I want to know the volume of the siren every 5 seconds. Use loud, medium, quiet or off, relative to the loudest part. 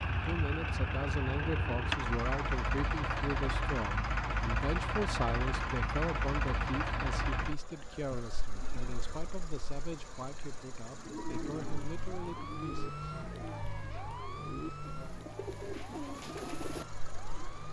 off, off, loud, medium.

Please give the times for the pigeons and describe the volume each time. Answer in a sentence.
You can hear the pigeons from 10.9 to 16.9 s, getting quieter then louder.